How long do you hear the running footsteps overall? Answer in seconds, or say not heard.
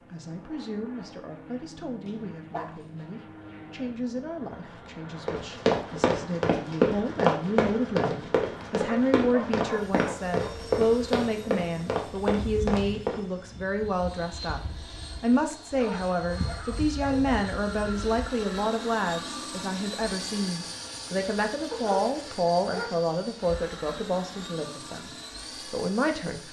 8 s.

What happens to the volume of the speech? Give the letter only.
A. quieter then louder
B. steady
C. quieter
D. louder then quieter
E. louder
E.